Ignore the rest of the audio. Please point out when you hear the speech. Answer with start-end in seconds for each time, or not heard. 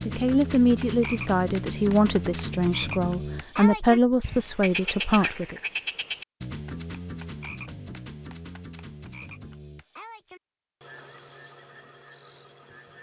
0.1-5.6.